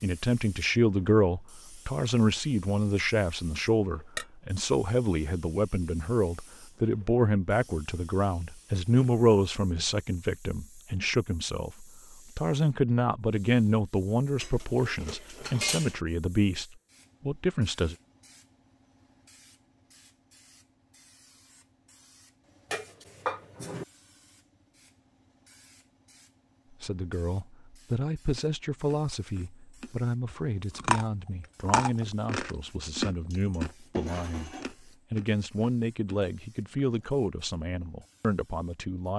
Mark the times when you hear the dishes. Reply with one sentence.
The dishes can be heard from 14.4 to 16.0 s, from 22.7 to 23.9 s and from 33.3 to 34.7 s.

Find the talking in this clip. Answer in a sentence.
You can hear the talking from 0.0 to 16.6 s, from 17.2 to 17.9 s and from 26.7 to 39.1 s.